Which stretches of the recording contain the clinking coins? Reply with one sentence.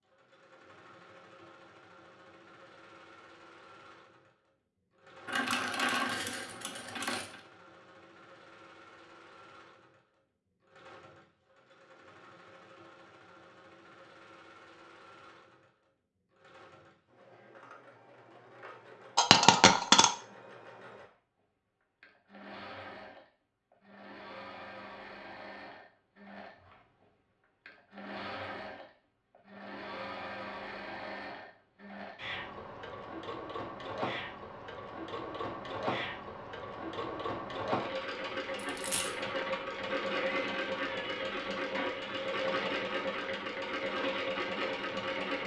The clinking coins can be heard from 5.2 to 7.4 s, from 19.1 to 20.1 s and from 38.5 to 39.1 s.